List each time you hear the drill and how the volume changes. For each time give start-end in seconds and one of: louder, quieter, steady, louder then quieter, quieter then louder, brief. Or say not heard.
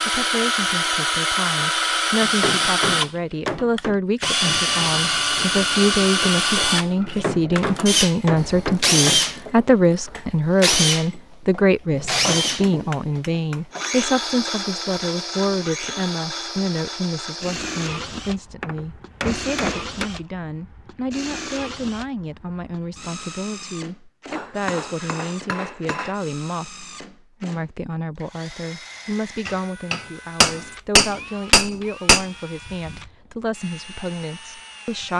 0.0-35.1 quieter.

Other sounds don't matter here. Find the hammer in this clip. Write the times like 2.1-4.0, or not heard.
2.2-4.0, 7.0-9.5, 11.9-13.9, 18.6-20.1, 24.3-26.1, 29.4-32.2.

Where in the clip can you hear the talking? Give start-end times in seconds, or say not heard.
0.0-35.1.